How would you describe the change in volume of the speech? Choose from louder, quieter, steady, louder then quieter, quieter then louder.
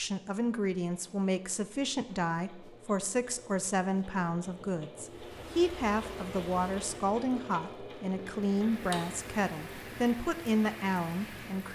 steady.